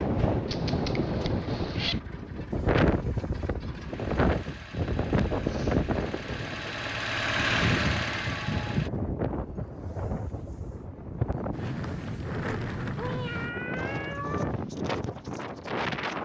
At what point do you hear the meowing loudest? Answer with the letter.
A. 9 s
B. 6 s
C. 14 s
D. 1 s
A.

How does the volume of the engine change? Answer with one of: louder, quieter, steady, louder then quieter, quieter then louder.
louder.